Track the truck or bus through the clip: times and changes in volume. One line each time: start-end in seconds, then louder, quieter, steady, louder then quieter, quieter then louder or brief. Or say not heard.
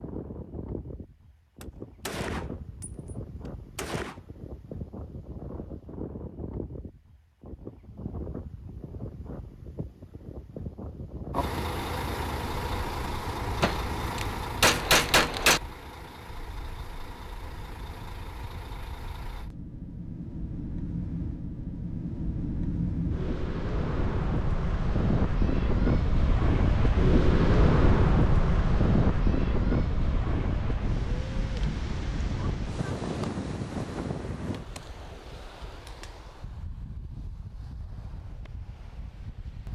11.3-19.5 quieter.